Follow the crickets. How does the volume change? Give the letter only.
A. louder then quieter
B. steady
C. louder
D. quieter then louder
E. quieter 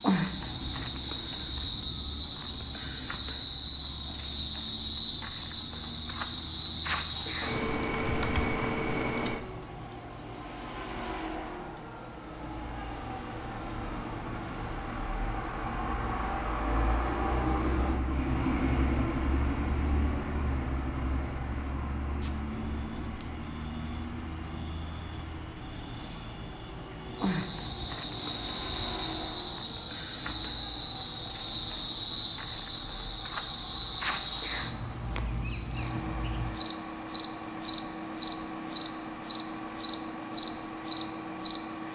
D.